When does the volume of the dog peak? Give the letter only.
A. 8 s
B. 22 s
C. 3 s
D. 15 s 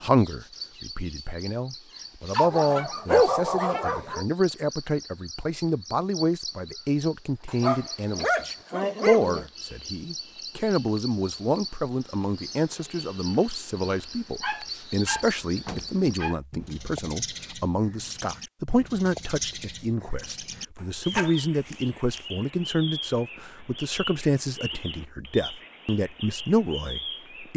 C.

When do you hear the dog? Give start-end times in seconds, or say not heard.
2.3-4.2, 7.5-9.4, 14.4-16.4, 20.8-22.2.